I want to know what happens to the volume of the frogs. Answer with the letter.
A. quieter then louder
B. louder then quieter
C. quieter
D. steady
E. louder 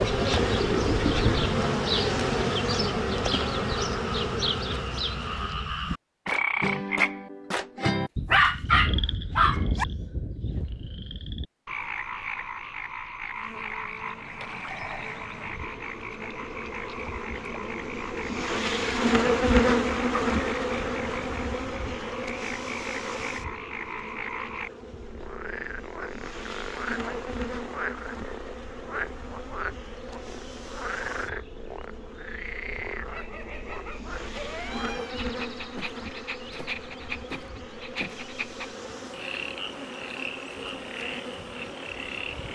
C.